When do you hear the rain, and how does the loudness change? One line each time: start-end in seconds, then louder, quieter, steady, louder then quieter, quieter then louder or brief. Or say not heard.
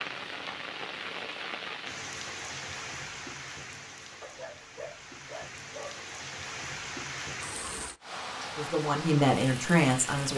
0.0-10.3 quieter then louder.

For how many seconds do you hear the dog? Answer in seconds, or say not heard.
2 s.